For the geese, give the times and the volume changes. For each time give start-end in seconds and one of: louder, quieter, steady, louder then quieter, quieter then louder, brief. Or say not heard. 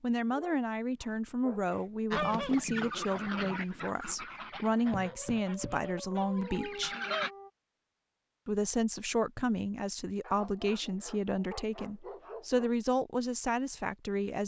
2.1-7.3 quieter.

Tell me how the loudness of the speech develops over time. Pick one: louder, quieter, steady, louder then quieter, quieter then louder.
steady.